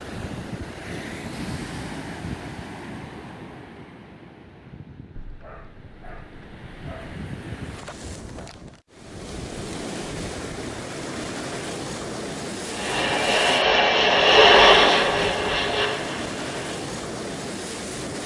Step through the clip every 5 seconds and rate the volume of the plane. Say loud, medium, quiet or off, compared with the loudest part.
off, off, loud, medium.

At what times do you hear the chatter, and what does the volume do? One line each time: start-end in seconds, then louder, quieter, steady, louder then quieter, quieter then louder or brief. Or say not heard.
not heard.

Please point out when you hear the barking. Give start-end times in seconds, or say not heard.
5.2-7.2.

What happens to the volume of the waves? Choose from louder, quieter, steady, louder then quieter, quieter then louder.
quieter then louder.